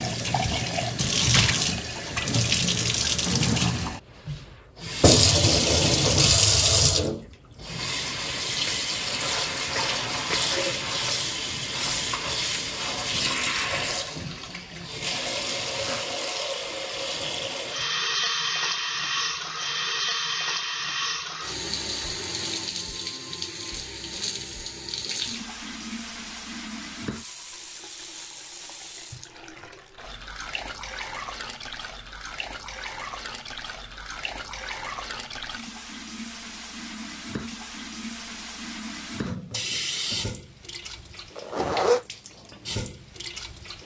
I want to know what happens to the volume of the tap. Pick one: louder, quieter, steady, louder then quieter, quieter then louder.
quieter.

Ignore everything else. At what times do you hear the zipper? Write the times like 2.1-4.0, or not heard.
41.4-42.0.